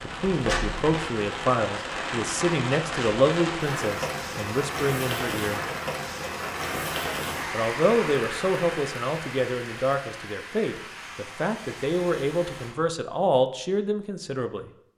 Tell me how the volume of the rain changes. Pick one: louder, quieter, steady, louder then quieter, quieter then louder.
quieter.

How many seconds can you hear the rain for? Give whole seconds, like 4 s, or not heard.
13 s.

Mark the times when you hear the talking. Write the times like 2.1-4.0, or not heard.
0.0-5.6, 7.5-14.7.